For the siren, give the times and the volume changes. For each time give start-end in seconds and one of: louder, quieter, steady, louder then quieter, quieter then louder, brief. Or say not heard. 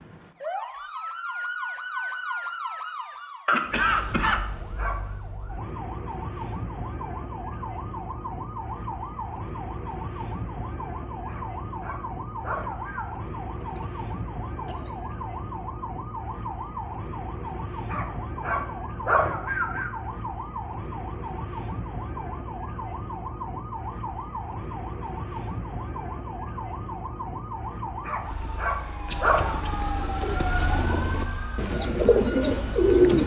0.0-33.2 steady.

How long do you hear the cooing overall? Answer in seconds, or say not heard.
3 s.